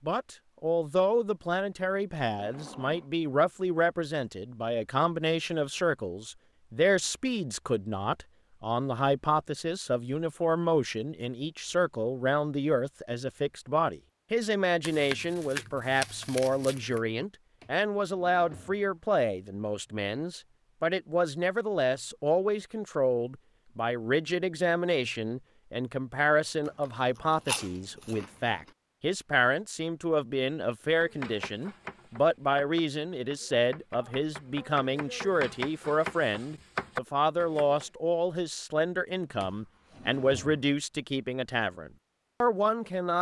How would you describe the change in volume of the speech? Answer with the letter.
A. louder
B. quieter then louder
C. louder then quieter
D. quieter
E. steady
E.